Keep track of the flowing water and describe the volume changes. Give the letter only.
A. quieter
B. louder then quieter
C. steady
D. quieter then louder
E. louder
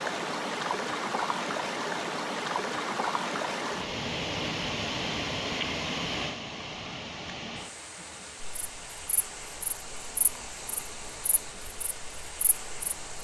A.